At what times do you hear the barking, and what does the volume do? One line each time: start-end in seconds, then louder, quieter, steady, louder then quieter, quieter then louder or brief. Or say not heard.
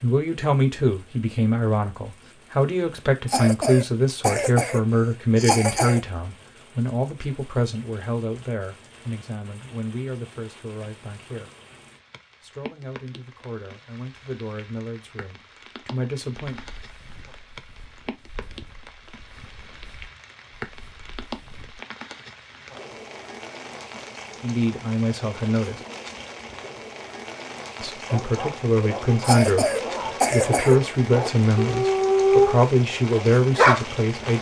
28.1-33.9 louder then quieter.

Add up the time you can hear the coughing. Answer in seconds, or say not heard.
4 s.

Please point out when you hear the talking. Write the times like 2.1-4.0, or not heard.
0.0-11.5, 12.4-16.6, 24.4-25.8, 27.8-29.7, 30.3-34.3.